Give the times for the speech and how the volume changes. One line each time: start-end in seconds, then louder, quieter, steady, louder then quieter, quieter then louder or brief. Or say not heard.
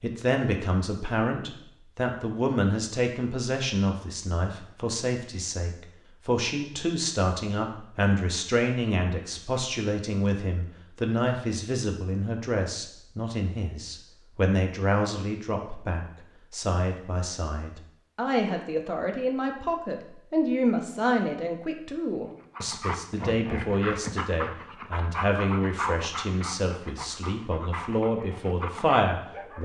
0.0-29.6 steady.